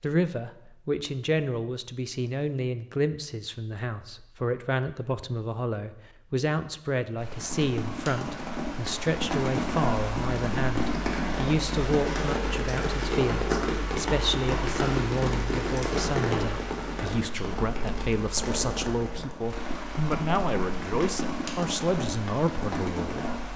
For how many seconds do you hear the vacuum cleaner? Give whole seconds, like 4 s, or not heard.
not heard.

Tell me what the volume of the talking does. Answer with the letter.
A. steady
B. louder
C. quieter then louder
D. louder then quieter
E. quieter
A.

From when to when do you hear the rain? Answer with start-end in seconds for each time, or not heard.
7.2-23.5.